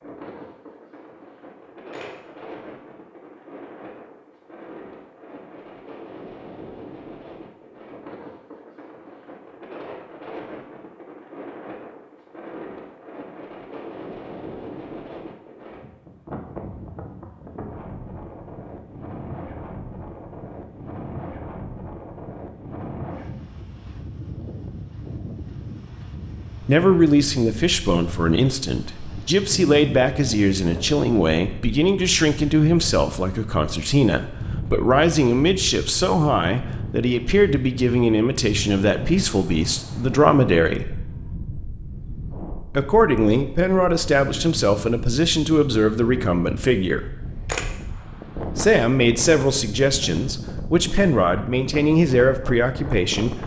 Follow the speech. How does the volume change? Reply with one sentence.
The volume of the speech stays about the same.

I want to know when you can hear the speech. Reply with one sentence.
The speech can be heard from 26.6 to 41.0 s, from 42.7 to 47.1 s and from 48.5 to 53.4 s.